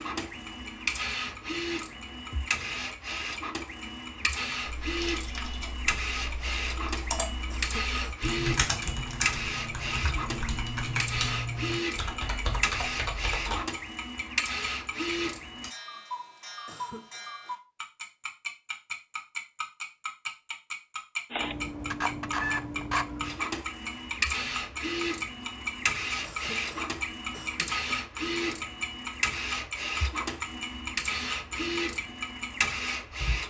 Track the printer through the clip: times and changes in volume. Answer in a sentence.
The printer can be heard from 0.0 to 15.7 s, at a steady volume; and from 21.3 to 33.4 s, at a steady volume.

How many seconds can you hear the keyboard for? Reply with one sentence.
The keyboard can be heard for 9 seconds in total.